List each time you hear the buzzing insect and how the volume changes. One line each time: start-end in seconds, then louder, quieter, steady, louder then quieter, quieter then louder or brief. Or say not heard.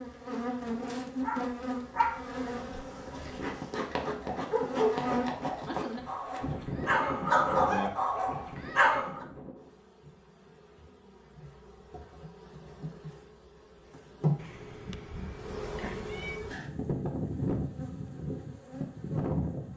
0.0-19.7 quieter then louder.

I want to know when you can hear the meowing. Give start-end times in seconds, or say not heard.
14.3-16.4.